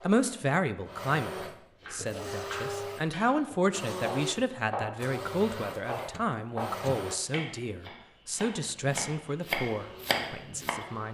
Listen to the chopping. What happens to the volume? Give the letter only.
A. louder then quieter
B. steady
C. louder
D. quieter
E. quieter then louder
C.